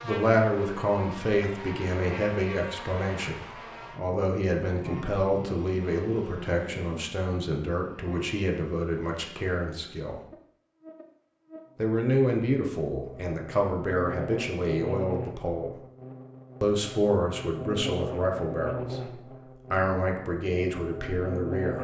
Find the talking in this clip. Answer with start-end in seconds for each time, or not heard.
0.0-10.2, 11.8-15.8, 16.6-21.7.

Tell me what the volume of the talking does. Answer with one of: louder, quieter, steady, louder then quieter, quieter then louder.
steady.